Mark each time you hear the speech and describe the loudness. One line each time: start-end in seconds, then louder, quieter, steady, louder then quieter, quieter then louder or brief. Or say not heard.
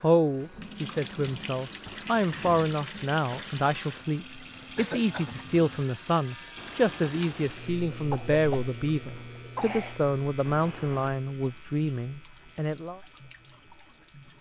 0.0-13.0 steady.